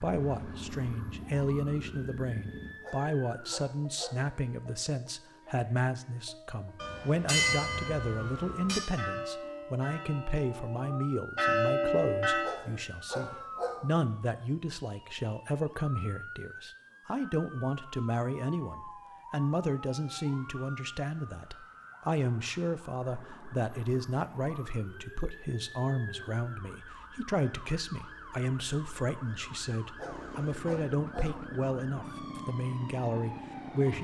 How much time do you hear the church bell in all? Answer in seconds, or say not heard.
6 s.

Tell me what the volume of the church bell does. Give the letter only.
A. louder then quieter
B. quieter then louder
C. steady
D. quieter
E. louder
B.